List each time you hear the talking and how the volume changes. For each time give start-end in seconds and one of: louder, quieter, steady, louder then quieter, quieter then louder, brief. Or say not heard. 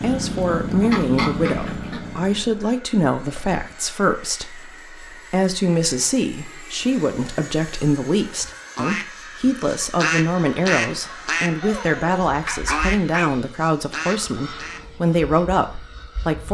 0.0-16.5 steady.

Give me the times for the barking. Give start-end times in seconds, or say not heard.
11.6-13.2.